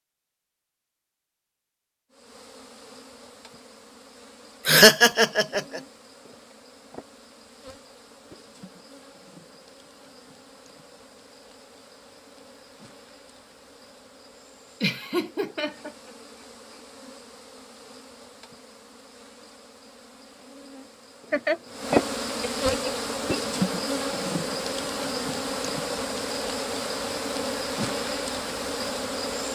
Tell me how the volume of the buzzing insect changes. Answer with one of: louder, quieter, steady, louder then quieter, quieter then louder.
louder.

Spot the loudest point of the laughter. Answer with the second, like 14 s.
5 s.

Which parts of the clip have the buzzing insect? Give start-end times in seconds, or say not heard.
2.1-29.5.